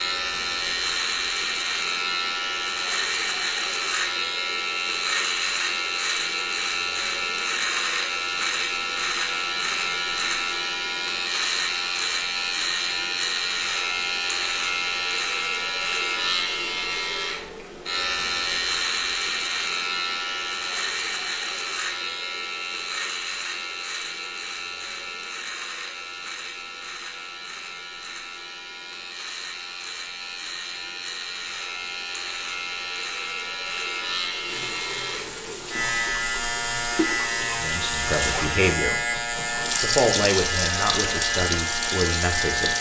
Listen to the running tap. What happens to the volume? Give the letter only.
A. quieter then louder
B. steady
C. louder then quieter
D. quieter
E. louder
E.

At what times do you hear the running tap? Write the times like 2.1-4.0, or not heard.
34.5-42.7.